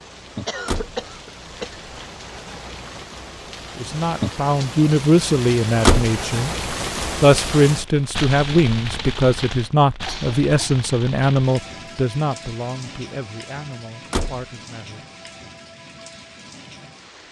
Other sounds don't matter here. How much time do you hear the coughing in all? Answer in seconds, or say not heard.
2 s.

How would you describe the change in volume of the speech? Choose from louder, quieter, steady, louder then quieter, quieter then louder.
quieter.